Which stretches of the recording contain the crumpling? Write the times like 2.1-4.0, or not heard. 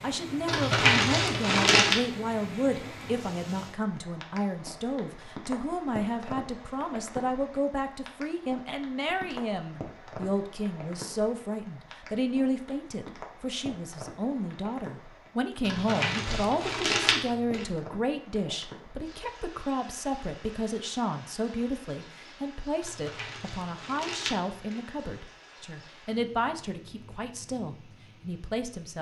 0.5-2.0, 15.7-17.6, 22.8-24.8.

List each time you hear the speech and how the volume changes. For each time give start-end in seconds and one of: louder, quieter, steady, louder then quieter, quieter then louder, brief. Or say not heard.
0.0-28.9 steady.